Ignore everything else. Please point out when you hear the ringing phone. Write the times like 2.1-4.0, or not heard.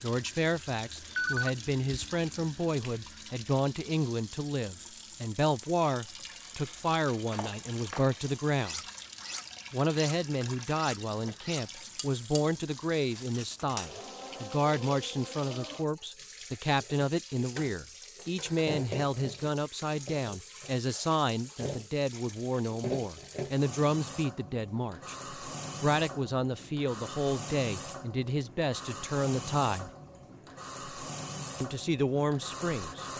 1.1-2.1.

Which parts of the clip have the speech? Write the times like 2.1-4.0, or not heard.
0.0-8.8, 9.7-25.1, 25.8-29.9, 31.6-33.0.